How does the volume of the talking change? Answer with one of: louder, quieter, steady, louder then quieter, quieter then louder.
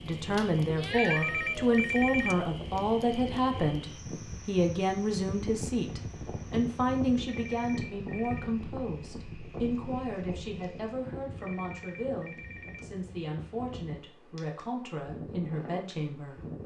quieter.